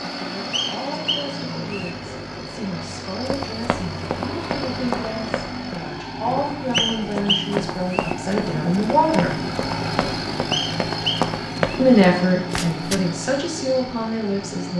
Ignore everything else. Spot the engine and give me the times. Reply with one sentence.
You can hear the engine from 0.0 to 14.7 s.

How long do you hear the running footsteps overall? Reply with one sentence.
You can hear the running footsteps for 10 seconds altogether.